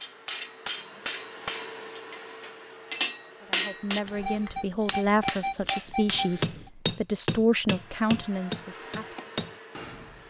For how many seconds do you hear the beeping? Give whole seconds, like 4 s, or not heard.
3 s.